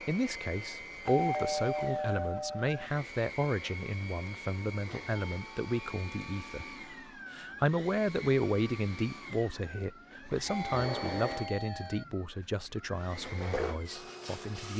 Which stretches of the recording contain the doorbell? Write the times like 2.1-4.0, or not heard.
1.1-2.8, 5.2-7.1, 10.4-12.1.